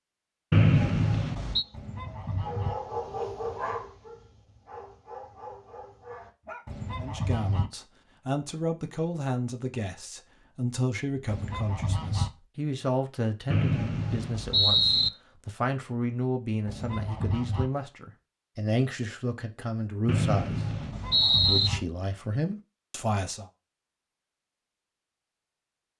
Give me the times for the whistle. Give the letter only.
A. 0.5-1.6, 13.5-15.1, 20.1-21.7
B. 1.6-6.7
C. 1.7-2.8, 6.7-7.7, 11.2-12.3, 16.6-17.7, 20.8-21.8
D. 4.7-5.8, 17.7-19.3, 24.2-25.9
A.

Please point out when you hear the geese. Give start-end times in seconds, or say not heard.
1.7-2.8, 6.7-7.7, 11.2-12.3, 16.6-17.7, 20.8-21.8.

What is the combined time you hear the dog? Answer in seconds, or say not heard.
5 s.